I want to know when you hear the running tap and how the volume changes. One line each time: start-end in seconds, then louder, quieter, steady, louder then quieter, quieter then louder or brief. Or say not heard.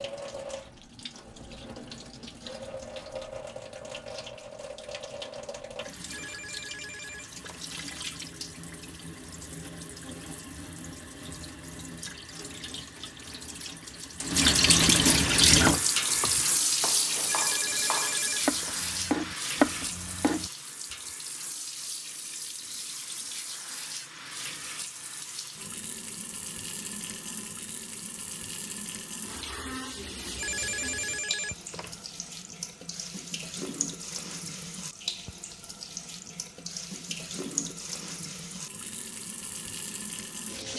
0.0-40.7 louder then quieter.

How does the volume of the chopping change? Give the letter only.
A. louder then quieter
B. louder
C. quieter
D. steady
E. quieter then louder
B.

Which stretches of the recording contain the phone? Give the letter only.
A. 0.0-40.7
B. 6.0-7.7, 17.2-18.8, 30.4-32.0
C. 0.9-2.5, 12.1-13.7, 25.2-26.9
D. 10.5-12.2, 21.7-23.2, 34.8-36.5
B.